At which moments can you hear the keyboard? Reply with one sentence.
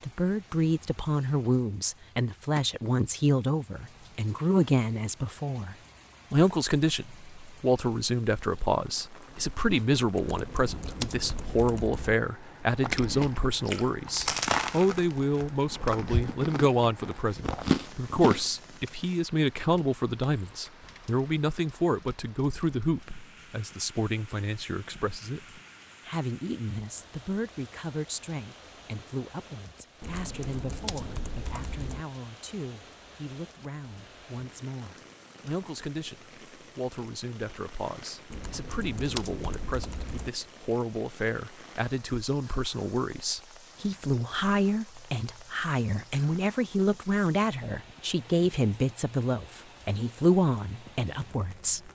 The keyboard can be heard from 10.2 to 12.2 s, from 30.0 to 32.0 s and from 38.3 to 40.3 s.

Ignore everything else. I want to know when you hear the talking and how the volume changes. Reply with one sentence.
You can hear the talking from 0.0 to 51.9 s, getting quieter then louder.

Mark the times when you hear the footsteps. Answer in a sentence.
The footsteps can't be heard in this clip.